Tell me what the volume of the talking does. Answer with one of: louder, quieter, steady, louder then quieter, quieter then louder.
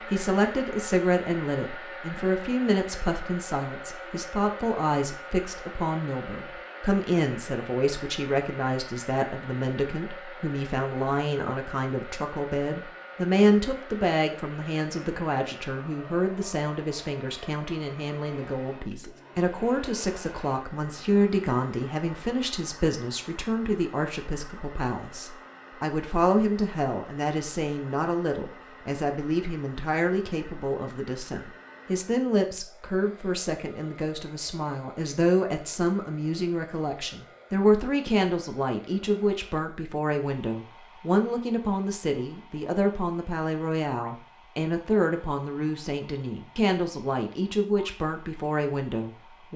steady.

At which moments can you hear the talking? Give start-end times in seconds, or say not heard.
0.0-49.5.